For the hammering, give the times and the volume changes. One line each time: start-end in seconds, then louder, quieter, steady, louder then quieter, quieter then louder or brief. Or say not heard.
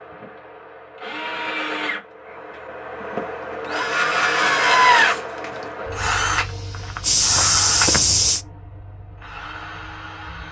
not heard.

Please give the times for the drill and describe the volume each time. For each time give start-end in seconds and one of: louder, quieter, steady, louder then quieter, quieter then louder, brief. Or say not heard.
0.0-10.4 louder then quieter.